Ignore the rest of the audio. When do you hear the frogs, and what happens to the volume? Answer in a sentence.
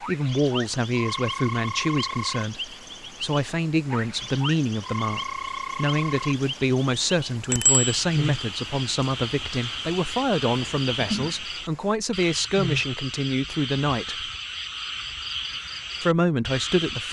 The frogs can be heard from 0.0 to 17.0 s, at a steady volume.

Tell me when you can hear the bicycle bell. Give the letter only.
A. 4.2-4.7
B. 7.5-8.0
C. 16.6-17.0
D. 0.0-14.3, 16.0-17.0
B.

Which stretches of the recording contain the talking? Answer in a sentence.
You can hear the talking from 0.0 to 14.3 s and from 16.0 to 17.0 s.